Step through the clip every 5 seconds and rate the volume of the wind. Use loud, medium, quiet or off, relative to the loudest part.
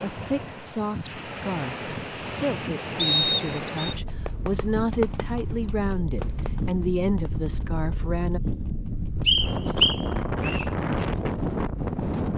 medium, medium, loud.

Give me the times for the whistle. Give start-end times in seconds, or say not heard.
3.0-4.0, 9.2-10.7.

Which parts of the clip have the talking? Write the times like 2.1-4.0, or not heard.
0.0-8.4.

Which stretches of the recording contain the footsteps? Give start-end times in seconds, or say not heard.
not heard.